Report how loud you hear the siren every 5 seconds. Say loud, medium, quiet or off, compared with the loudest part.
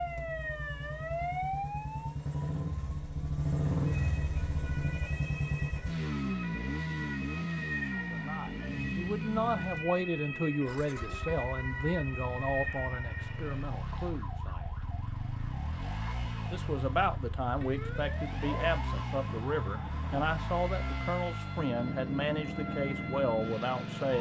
loud, loud, loud, medium, medium.